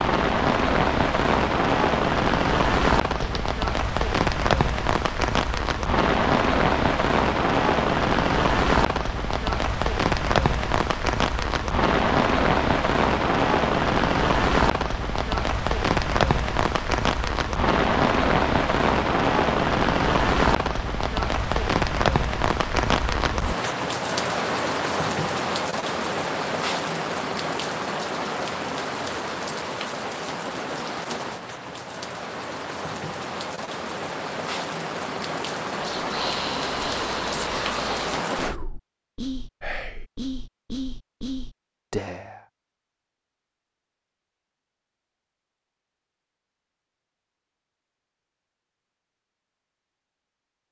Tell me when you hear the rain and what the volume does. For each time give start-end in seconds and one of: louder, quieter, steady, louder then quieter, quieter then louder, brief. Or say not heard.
0.0-38.5 quieter.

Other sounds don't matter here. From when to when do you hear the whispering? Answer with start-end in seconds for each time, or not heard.
35.8-42.5.